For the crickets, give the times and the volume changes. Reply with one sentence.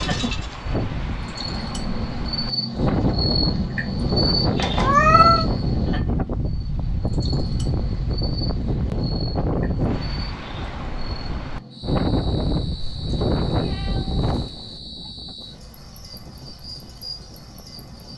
You can hear the crickets from 0.0 to 18.1 s, getting quieter.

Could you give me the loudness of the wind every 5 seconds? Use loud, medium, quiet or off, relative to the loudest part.
loud, loud, loud, quiet.